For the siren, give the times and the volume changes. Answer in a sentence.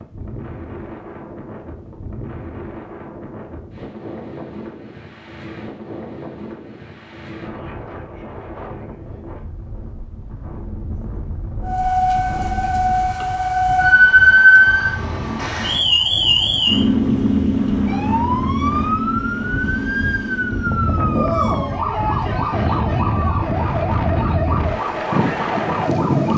The siren can be heard from 11.6 to 26.3 s, getting quieter.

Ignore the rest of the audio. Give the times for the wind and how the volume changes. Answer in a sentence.
The wind can be heard from 0.0 to 26.3 s, getting louder.